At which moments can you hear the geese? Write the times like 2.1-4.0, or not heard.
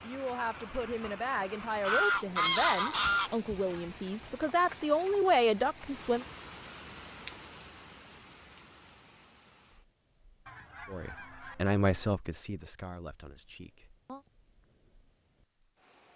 1.8-3.3, 10.4-11.8.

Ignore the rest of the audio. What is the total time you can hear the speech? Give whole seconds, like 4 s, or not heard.
10 s.